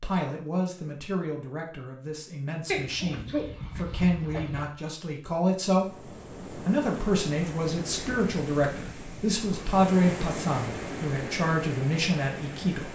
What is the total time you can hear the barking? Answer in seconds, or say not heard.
2 s.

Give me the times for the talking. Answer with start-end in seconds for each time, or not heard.
0.0-12.9.